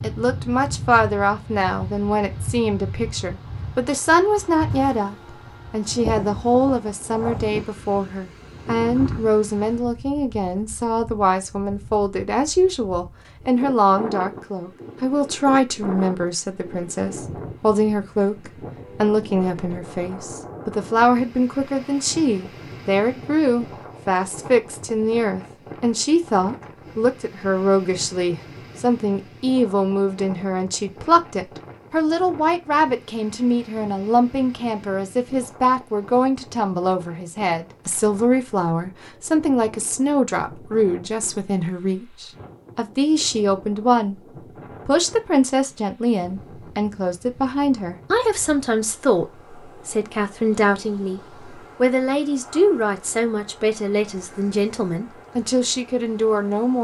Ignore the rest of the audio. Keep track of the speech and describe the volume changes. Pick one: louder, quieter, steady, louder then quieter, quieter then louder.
steady.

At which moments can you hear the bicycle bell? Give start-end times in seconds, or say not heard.
not heard.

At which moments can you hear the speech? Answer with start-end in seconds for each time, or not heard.
0.0-44.2, 44.9-56.7.